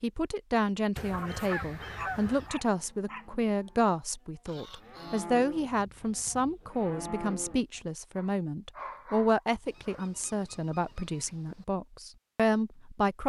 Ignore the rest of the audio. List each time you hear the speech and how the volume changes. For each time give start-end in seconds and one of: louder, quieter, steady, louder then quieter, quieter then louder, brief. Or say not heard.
0.0-13.2 steady.